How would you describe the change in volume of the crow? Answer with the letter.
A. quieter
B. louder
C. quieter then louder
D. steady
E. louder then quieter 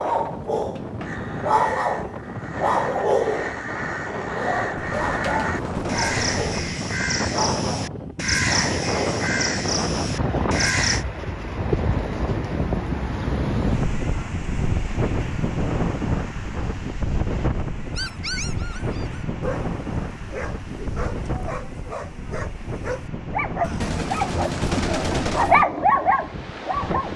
B.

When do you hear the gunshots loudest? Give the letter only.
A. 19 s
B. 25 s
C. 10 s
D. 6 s
B.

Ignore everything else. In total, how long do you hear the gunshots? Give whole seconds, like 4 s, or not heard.
4 s.